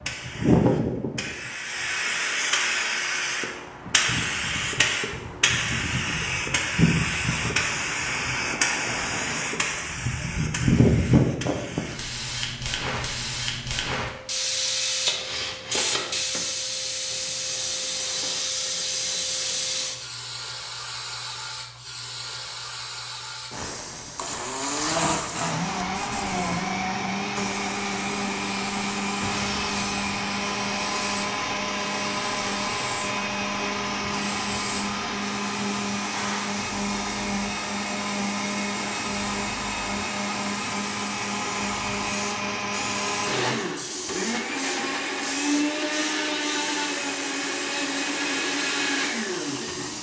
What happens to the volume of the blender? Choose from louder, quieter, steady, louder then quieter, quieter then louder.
steady.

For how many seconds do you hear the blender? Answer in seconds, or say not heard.
26 s.